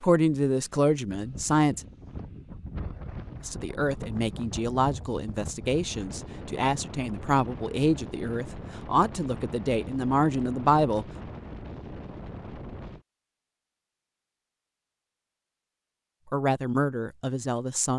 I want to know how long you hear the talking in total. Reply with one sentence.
The talking can be heard for 11 seconds in total.